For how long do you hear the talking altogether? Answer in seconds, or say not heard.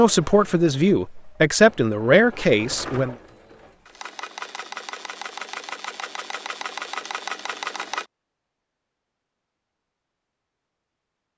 3 s.